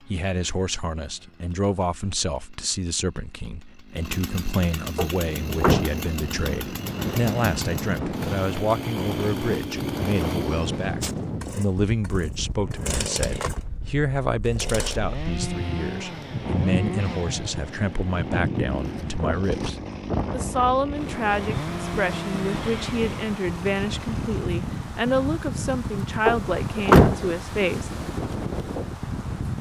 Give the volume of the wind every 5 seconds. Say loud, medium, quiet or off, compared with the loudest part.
off, loud, loud, loud, loud, loud.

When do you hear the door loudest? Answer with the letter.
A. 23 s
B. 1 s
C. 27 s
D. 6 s
C.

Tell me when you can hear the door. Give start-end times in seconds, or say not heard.
5.0-6.0, 26.2-27.2.